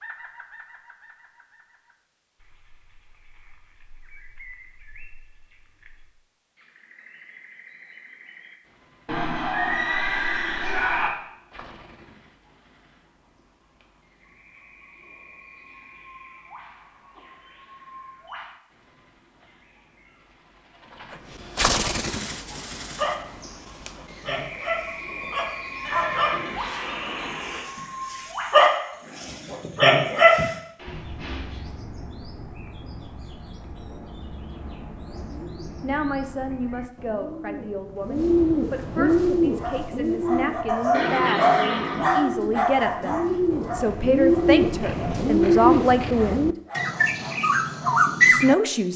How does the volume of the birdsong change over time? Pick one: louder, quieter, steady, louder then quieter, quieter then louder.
louder.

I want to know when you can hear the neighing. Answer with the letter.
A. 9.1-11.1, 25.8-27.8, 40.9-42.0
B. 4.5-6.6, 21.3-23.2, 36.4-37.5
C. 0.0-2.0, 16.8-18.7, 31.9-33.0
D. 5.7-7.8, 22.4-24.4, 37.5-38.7
A.